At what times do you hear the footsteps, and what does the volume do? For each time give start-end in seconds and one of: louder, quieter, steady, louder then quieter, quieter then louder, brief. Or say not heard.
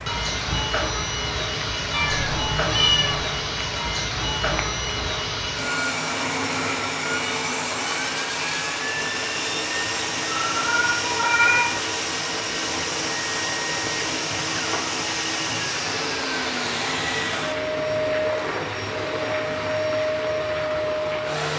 not heard.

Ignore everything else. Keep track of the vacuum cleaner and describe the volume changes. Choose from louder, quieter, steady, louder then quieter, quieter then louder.
steady.